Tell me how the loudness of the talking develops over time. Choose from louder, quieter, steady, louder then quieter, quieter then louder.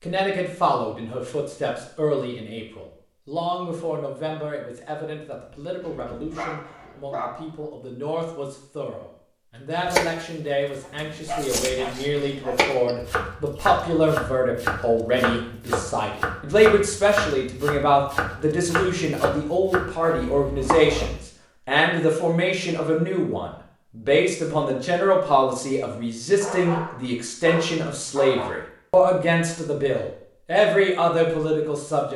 louder.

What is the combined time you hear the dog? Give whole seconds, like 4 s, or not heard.
5 s.